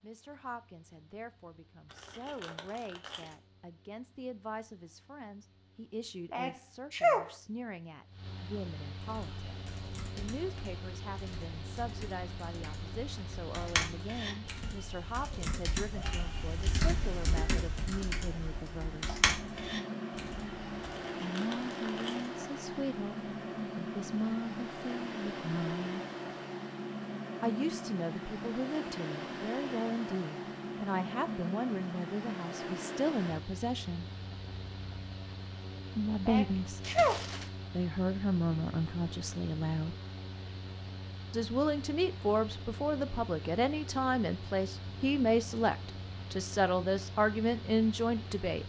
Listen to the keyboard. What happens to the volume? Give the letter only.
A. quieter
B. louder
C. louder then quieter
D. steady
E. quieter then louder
B.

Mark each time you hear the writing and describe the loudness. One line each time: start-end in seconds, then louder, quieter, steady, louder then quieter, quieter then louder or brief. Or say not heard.
not heard.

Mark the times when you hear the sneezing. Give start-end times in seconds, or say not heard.
6.3-7.3, 36.2-37.2.